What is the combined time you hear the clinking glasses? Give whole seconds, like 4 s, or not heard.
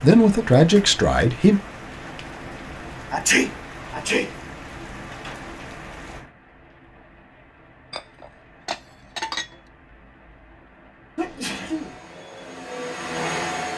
2 s.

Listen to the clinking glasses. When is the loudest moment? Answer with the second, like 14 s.
9 s.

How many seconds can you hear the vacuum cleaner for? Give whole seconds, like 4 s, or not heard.
2 s.